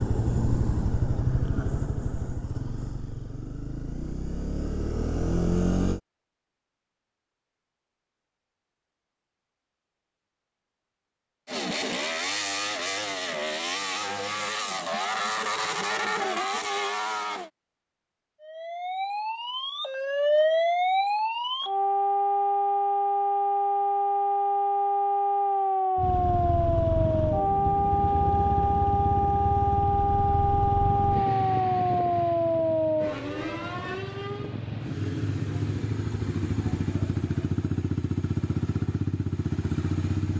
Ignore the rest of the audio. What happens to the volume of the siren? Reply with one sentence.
The volume of the siren stays about the same.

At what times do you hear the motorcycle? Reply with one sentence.
The motorcycle can be heard from 0.0 to 6.0 s, from 11.4 to 17.5 s and from 25.9 to 40.3 s.